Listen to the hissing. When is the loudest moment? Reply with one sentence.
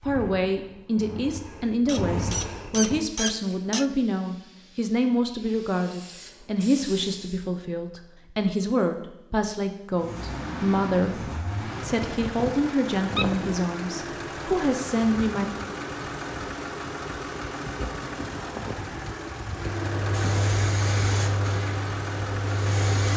The loudest moment of the hissing is at 21 seconds.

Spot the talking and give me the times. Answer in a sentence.
The talking can be heard from 0.0 to 15.5 s.